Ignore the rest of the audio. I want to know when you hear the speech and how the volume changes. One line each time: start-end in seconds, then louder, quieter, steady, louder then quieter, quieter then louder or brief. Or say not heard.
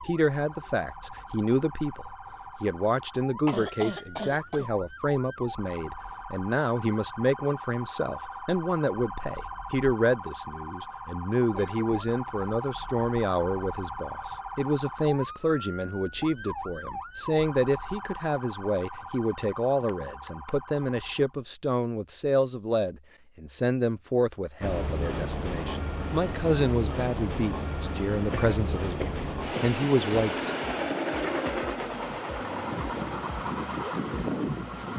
0.1-30.6 steady.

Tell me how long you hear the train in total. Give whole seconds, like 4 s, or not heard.
10 s.